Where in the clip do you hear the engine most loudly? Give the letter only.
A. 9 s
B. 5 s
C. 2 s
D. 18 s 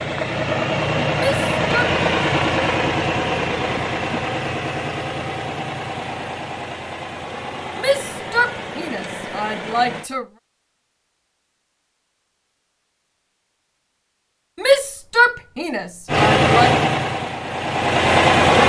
D.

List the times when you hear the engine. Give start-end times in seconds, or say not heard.
0.0-10.1, 16.1-18.6.